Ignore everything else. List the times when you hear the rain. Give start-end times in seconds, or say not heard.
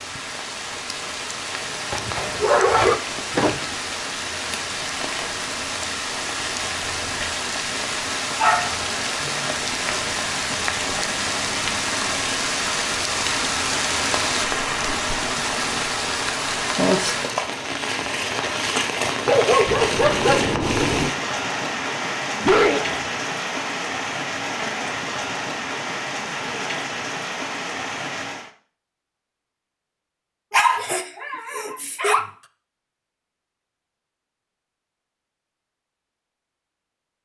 0.0-28.5.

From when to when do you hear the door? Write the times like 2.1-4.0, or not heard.
3.0-3.8, 19.6-21.1.